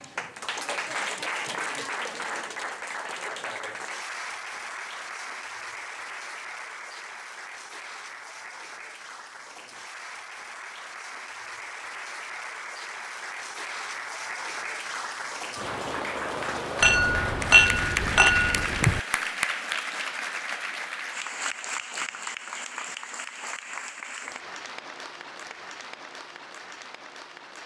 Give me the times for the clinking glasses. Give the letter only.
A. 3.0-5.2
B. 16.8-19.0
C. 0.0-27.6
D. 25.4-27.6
B.